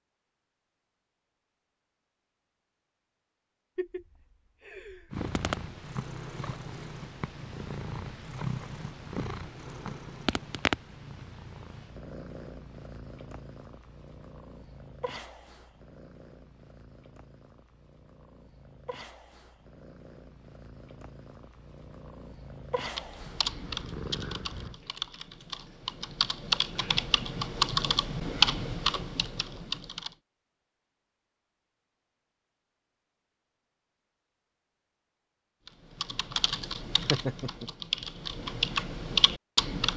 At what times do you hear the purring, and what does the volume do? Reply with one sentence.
The purring can be heard from 5.1 to 24.8 s, getting quieter then louder.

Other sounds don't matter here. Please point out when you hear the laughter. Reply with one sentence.
The laughter can be heard from 3.8 to 5.3 s and from 37.1 to 37.7 s.